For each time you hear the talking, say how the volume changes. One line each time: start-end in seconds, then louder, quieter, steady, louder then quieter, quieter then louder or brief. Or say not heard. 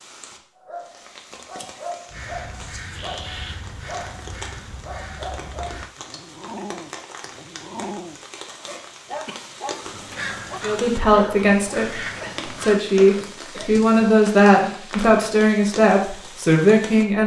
10.6-17.2 steady.